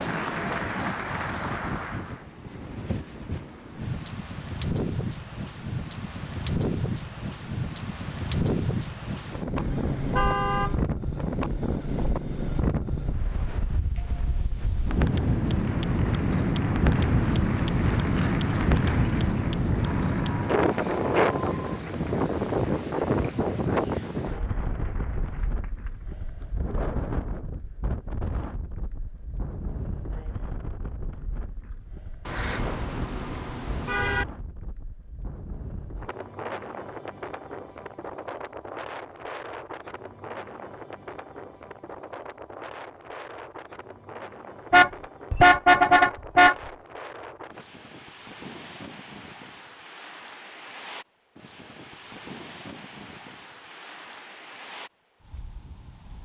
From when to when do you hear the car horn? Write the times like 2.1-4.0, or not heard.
9.6-10.8, 32.2-34.2, 44.7-46.5.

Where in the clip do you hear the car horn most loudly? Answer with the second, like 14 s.
46 s.